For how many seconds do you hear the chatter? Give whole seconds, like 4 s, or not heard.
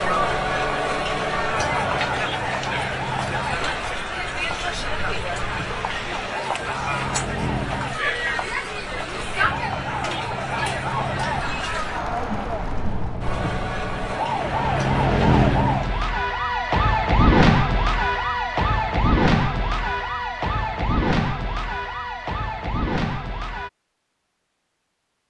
16 s.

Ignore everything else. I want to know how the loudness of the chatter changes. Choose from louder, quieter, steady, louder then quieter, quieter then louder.
quieter.